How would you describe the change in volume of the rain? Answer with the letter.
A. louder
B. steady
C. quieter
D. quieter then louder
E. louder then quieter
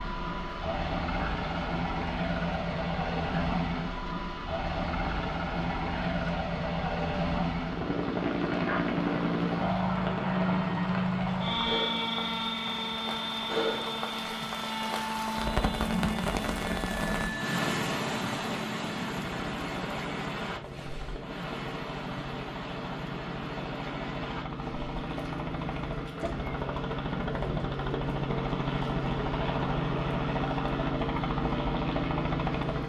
E.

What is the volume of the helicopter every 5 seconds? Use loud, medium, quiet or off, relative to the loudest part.
loud, loud, loud, medium, medium, loud, loud.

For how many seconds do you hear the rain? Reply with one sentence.
The rain can be heard for 33 seconds in total.